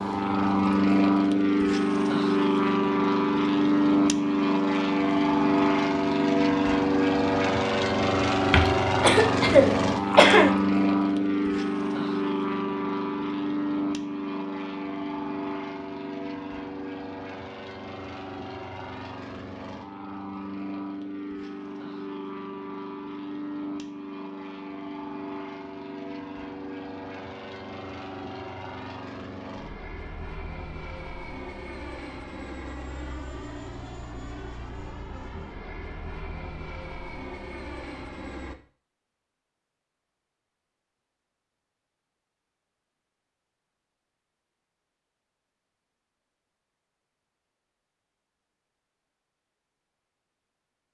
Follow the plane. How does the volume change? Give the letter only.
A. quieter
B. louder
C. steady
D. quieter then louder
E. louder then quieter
A.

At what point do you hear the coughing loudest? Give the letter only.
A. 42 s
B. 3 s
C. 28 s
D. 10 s
D.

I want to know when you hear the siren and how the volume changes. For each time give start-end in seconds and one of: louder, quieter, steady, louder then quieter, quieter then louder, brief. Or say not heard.
not heard.